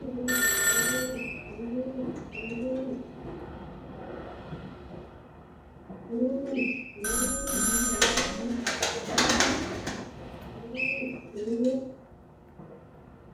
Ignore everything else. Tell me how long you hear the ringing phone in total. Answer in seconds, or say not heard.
2 s.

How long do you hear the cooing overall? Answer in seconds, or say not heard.
9 s.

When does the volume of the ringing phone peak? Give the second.
1 s.